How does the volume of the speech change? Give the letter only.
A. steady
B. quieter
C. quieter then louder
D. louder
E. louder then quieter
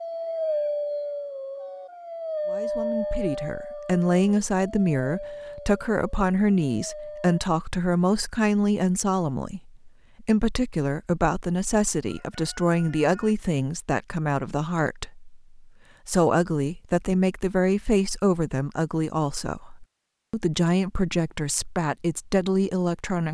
A.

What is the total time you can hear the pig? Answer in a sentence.
You can't hear the pig here.